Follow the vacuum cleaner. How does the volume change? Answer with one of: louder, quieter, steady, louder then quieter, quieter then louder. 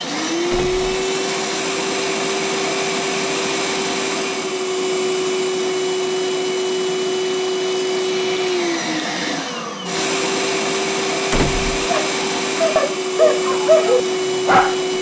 steady.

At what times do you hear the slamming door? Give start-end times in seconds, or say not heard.
0.5-1.0, 11.3-11.9.